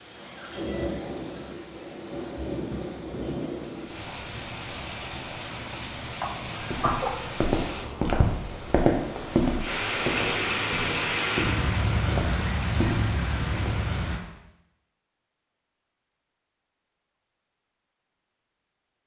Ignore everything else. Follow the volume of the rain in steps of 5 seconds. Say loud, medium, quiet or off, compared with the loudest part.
medium, medium, loud, off.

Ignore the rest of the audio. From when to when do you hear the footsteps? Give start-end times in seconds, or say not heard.
6.5-13.9.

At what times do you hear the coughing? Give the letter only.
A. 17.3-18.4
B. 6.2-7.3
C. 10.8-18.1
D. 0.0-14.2
B.